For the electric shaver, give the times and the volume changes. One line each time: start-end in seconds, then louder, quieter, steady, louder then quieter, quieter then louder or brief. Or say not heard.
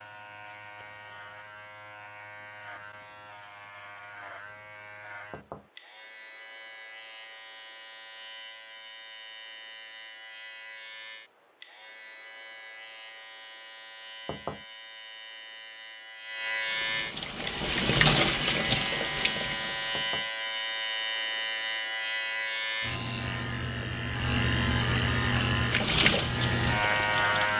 0.0-27.5 louder.